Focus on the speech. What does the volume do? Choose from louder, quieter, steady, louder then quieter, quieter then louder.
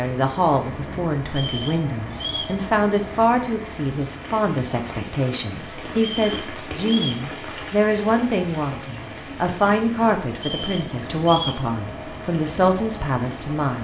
steady.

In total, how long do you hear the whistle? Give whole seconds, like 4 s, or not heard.
4 s.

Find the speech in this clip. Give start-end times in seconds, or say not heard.
0.0-13.7.